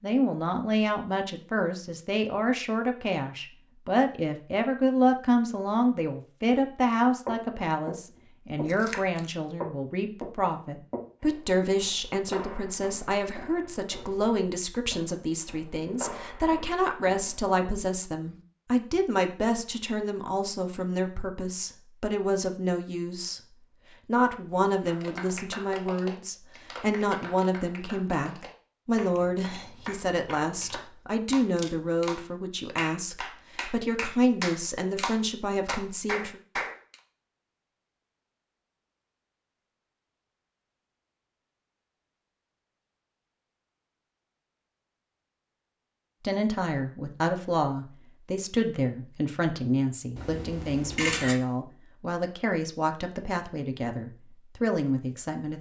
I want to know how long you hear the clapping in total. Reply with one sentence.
The clapping can be heard for 12 seconds in total.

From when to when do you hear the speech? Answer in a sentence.
The speech can be heard from 0.0 to 23.4 s, from 24.1 to 36.4 s and from 46.2 to 55.5 s.